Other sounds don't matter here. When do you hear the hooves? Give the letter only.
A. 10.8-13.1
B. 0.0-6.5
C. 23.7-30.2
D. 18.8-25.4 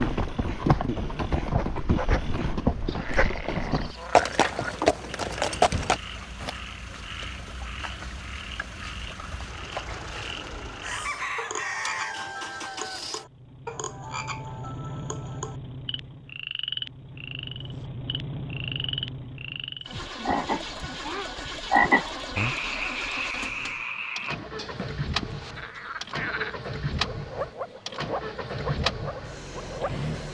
B.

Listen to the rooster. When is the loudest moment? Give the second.
11 s.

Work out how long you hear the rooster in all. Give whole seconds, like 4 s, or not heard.
2 s.